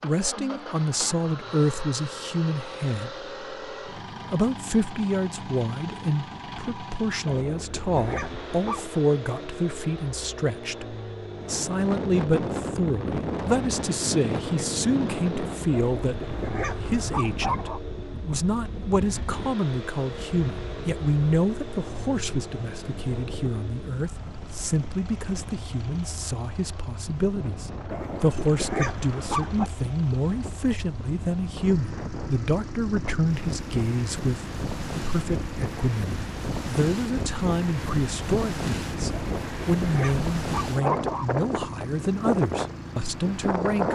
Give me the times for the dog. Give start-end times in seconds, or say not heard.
7.2-9.0, 15.7-17.8, 27.9-29.7, 39.1-41.3.